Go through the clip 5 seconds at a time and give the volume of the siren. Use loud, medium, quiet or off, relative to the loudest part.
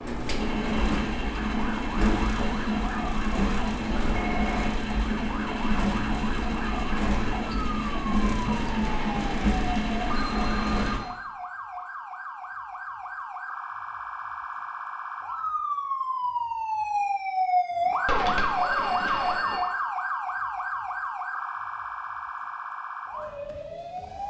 medium, medium, medium, loud, medium.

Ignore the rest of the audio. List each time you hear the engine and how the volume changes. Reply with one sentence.
The engine can be heard from 0.0 to 11.0 s, at a steady volume.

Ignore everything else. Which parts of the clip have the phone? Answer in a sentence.
The phone can be heard from 4.1 to 4.5 s, from 8.7 to 11.1 s and from 18.1 to 19.6 s.